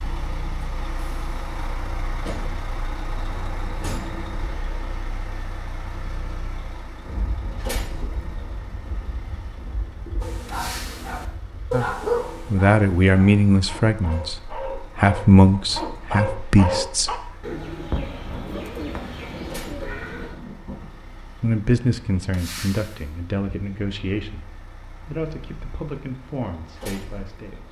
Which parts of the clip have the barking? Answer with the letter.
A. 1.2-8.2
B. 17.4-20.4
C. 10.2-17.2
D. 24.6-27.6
C.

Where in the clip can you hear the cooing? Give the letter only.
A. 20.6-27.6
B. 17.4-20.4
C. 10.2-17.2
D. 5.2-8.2
B.